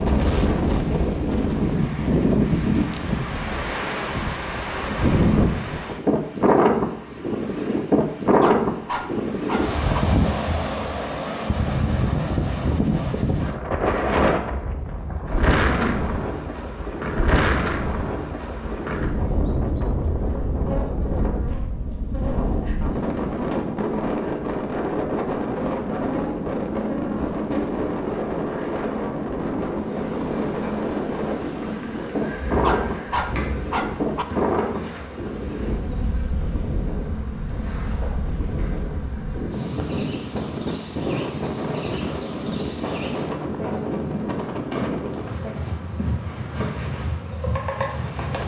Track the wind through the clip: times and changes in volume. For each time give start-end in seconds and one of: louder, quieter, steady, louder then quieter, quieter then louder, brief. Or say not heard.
0.0-48.4 quieter.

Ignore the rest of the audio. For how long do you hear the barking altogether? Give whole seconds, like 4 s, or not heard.
3 s.